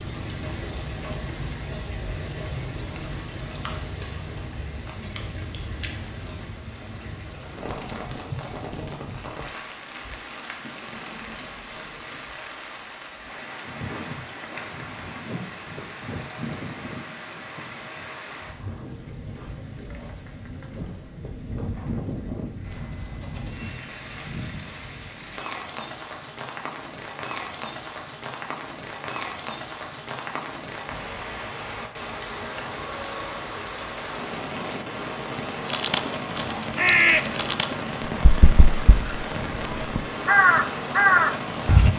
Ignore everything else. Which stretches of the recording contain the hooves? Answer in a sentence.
You can hear the hooves from 13.7 to 23.5 s.